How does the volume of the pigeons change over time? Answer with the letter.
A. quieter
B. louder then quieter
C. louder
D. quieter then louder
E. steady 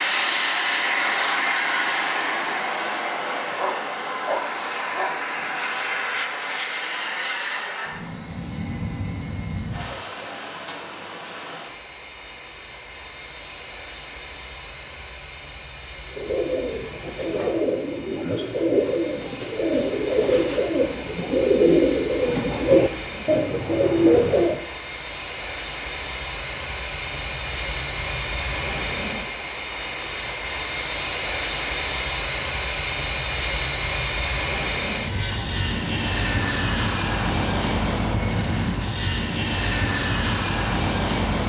C.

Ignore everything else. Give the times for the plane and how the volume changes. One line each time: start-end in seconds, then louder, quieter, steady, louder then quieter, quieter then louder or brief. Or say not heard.
0.0-41.4 quieter then louder.